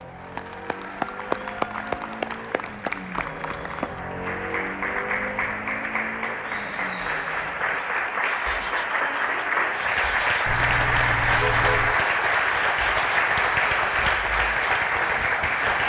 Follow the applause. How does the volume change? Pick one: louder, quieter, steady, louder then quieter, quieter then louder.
louder.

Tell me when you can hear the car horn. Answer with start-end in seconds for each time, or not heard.
10.4-11.9.